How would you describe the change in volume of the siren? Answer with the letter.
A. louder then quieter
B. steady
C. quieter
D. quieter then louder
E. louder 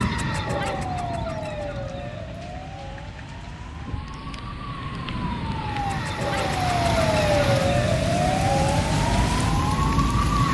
D.